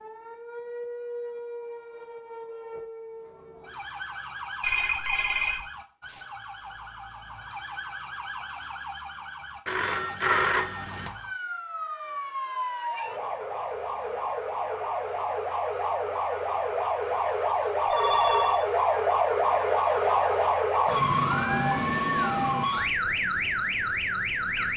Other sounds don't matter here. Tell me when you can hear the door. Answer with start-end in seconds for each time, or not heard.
not heard.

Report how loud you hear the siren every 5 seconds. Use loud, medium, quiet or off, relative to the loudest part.
quiet, quiet, medium, loud, loud.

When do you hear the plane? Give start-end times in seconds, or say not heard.
not heard.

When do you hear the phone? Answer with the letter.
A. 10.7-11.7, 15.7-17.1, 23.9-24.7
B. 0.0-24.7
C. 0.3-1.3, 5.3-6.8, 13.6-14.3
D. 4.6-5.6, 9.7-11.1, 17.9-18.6
D.